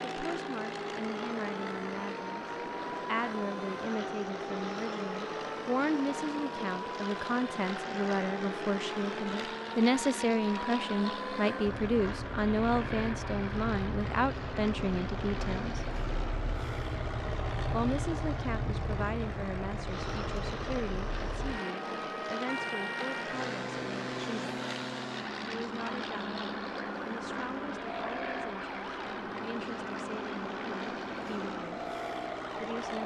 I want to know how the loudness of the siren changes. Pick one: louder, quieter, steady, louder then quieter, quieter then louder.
steady.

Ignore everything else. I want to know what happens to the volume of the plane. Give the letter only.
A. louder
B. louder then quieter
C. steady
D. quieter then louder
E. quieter
C.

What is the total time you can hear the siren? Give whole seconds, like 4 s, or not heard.
33 s.